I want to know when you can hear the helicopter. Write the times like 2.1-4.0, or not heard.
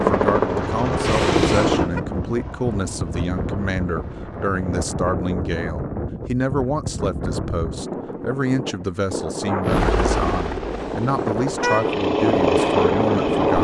0.0-4.8, 9.6-13.6.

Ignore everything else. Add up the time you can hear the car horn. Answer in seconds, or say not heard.
2 s.